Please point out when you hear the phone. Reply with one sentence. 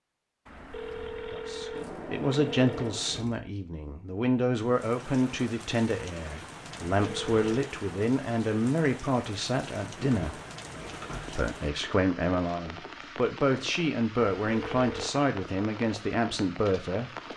The phone can be heard from 0.5 to 3.0 s, from 7.0 to 7.7 s and from 14.4 to 15.1 s.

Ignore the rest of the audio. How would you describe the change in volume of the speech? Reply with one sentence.
The volume of the speech stays about the same.